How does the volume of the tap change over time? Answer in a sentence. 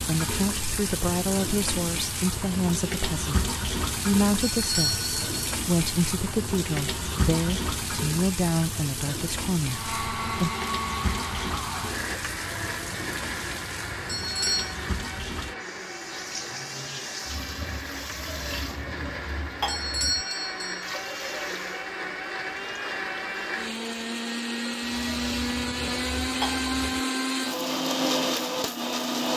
The loudness of the tap goes down.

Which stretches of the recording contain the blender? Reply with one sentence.
You can hear the blender from 9.7 to 29.3 s.